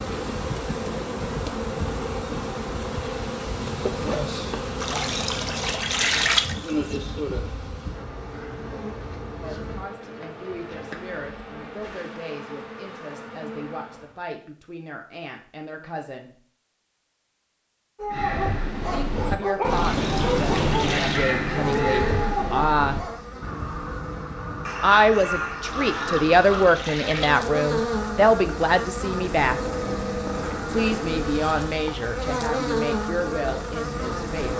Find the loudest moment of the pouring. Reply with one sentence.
The volume of the pouring peaks at 6 seconds.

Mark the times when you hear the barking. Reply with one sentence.
You can hear the barking from 17.9 to 23.2 s.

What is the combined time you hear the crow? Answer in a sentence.
You can hear the crow for 9 seconds altogether.